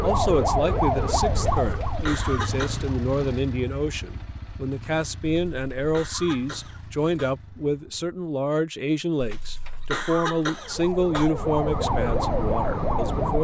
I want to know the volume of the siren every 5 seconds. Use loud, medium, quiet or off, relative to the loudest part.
loud, off, loud.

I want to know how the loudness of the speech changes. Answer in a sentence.
The loudness of the speech stays about the same.